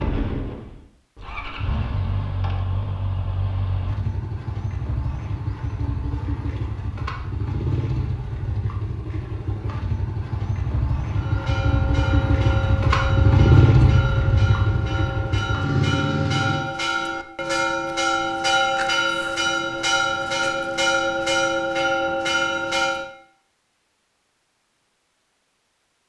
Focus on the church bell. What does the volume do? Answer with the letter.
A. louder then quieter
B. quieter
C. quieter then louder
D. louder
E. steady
D.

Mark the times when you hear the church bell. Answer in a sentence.
The church bell can be heard from 11.1 to 23.1 s.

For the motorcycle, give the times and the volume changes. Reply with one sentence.
The motorcycle can be heard from 0.0 to 16.6 s, getting louder.